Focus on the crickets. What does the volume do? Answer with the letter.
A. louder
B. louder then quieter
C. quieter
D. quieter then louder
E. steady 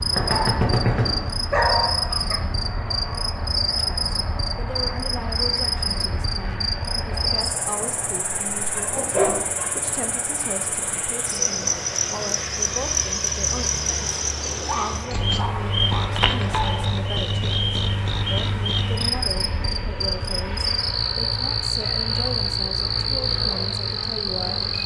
E.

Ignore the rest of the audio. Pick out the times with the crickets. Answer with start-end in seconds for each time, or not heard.
0.0-24.8.